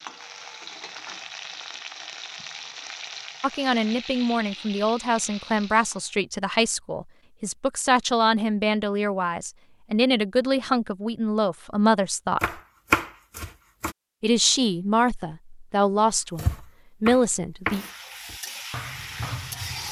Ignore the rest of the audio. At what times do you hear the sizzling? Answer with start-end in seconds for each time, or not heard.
0.0-6.1, 17.6-19.8.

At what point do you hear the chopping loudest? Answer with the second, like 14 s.
13 s.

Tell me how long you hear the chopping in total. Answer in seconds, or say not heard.
5 s.